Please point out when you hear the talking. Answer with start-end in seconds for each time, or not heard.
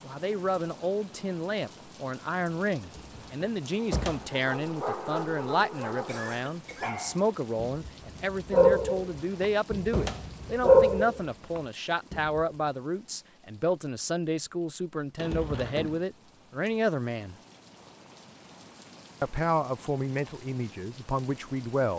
0.0-17.4, 19.2-21.9.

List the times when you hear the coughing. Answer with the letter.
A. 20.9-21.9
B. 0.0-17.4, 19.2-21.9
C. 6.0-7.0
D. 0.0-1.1
C.